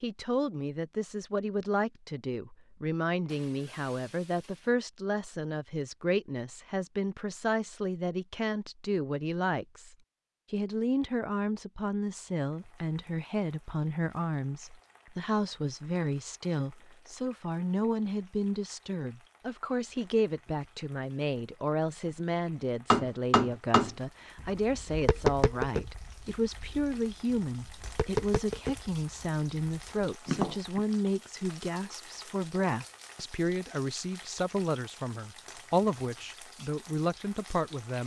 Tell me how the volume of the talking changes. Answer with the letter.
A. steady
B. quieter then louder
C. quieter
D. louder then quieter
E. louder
A.